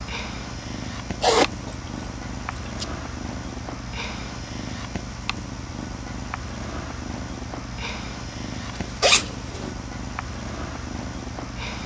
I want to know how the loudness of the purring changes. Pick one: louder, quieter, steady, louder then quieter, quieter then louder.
steady.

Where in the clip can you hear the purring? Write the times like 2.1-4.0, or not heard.
0.0-11.8.